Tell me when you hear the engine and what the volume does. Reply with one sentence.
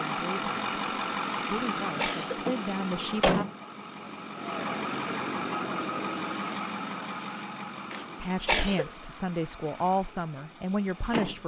You can hear the engine from 0.0 to 11.4 s, getting quieter.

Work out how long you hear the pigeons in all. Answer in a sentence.
The pigeons can't be heard in this clip.